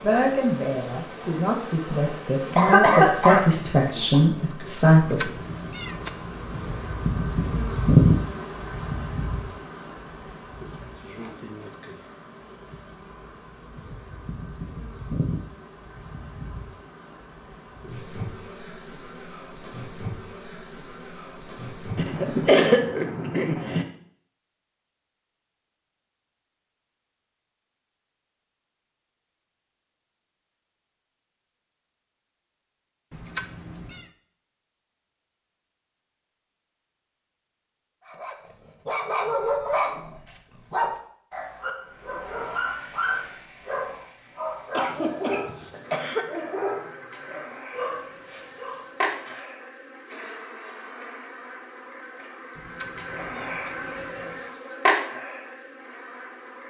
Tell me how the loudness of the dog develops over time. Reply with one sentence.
The volume of the dog goes down.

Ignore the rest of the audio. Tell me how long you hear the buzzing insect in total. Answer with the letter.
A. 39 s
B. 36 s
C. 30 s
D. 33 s
D.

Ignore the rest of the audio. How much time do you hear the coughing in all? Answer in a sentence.
You can hear the coughing for 5 seconds altogether.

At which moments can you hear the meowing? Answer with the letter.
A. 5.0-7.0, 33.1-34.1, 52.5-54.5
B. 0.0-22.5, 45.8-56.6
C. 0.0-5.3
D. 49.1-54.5
A.